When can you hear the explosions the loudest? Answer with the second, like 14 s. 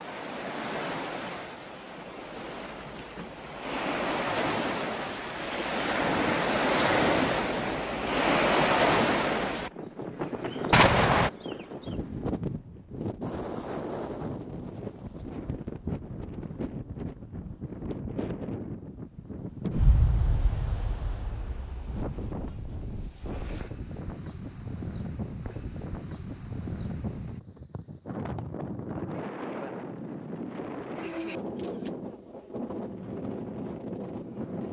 11 s.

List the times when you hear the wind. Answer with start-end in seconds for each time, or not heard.
0.0-34.6.